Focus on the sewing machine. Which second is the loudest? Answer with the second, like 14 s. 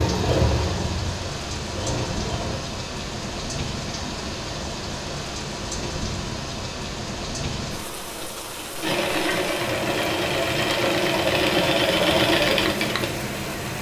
12 s.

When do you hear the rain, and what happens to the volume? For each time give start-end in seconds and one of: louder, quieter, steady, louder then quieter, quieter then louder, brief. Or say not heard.
0.0-13.7 steady.